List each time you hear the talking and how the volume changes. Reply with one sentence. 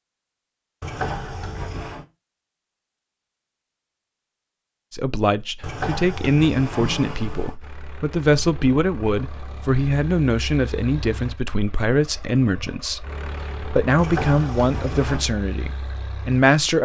The talking can be heard from 4.9 to 16.7 s, at a steady volume.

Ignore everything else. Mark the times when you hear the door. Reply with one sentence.
The door can be heard from 0.8 to 2.0 s, from 5.6 to 7.5 s and from 13.9 to 15.2 s.